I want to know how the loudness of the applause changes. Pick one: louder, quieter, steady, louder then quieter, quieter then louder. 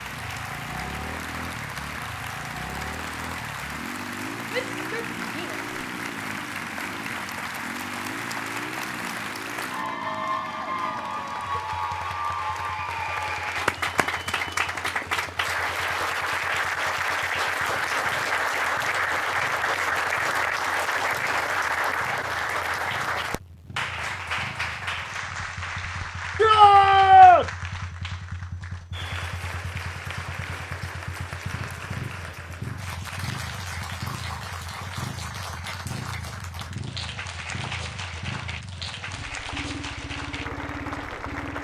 louder then quieter.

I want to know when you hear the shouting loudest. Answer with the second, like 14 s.
27 s.